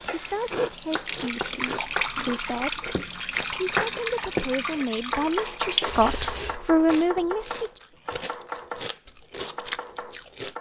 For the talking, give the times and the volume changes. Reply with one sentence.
You can hear the talking from 0.1 to 7.8 s, getting louder.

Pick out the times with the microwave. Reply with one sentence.
You can't hear the microwave here.